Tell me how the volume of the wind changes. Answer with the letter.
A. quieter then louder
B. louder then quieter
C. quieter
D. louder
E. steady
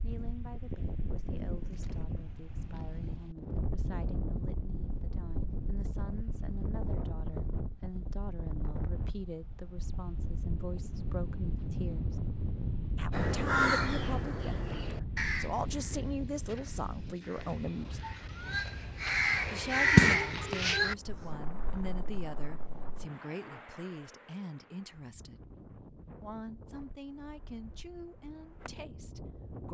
C.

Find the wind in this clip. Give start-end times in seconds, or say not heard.
0.0-29.6.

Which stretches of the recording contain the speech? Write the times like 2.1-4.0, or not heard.
0.0-12.2, 12.9-18.1, 19.5-25.4, 26.2-29.6.